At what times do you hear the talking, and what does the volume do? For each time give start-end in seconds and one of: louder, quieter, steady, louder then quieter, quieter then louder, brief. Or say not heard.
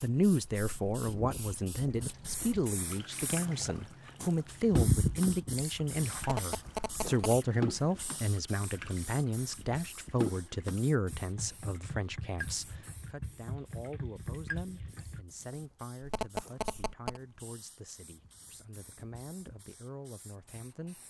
0.0-21.0 quieter.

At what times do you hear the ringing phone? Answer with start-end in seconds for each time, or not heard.
6.2-7.3, 16.0-17.2.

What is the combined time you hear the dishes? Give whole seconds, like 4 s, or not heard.
not heard.